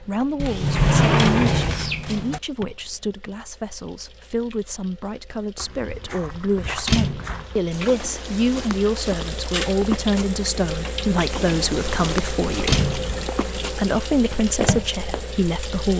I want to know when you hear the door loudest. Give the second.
1 s.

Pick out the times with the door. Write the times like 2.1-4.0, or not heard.
0.3-2.4, 6.8-7.5, 12.7-13.2.